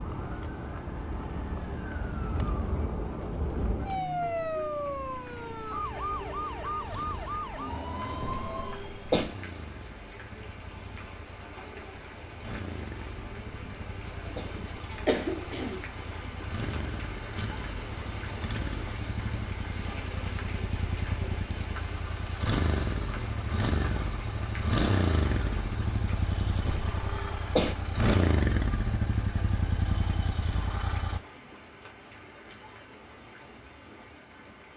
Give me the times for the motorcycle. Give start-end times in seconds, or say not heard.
0.0-31.2.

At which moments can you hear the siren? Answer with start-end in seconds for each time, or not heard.
0.0-8.8.